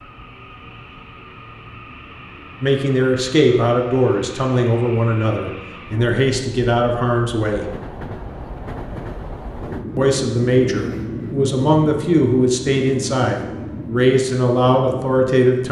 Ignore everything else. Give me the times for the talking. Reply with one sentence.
You can hear the talking from 2.6 to 7.7 s and from 9.9 to 15.6 s.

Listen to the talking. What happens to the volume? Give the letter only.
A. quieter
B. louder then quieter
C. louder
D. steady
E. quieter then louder
D.